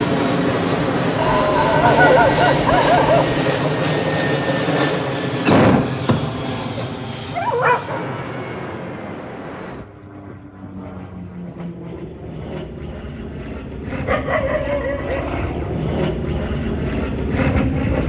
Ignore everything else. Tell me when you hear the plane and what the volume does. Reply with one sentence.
You can hear the plane from 0.0 to 18.0 s, getting quieter then louder.